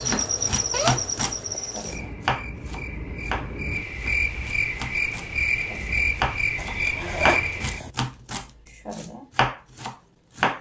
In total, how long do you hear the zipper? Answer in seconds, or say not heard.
3 s.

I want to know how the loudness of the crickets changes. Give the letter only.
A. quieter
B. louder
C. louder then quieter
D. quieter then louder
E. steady
D.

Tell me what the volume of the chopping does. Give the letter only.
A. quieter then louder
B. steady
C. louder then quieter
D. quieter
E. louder
A.